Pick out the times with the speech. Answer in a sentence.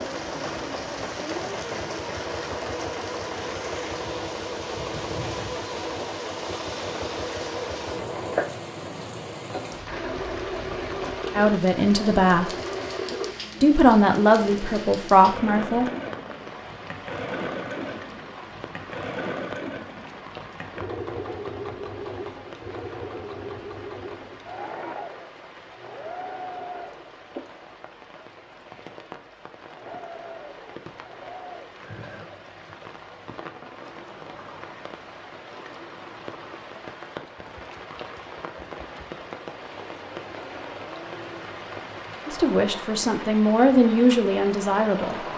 The speech can be heard from 11.3 to 12.5 s, from 13.6 to 15.9 s and from 42.2 to 45.2 s.